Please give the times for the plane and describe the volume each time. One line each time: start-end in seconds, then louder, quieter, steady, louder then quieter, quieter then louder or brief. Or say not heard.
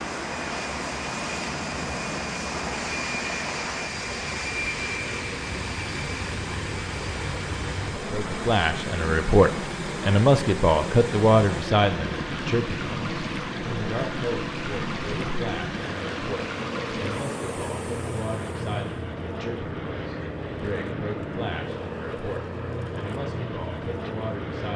0.0-24.7 steady.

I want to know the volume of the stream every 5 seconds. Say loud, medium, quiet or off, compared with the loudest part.
loud, loud, loud, loud, off.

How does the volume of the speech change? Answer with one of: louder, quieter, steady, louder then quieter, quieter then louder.
quieter.